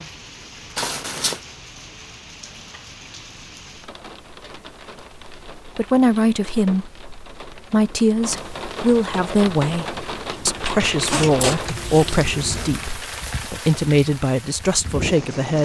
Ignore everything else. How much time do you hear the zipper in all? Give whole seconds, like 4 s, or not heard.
2 s.